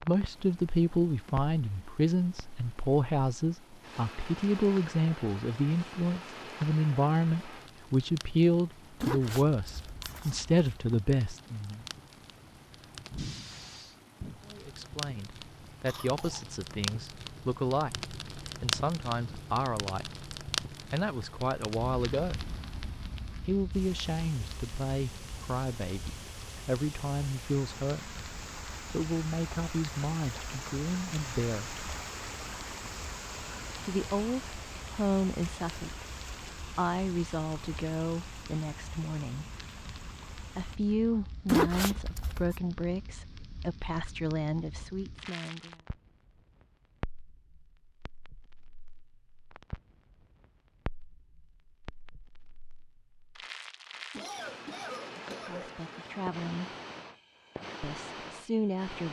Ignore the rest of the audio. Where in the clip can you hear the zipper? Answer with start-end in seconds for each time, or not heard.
9.0-11.0, 41.5-42.5.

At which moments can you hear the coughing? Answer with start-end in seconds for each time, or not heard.
15.8-16.4, 54.1-55.8.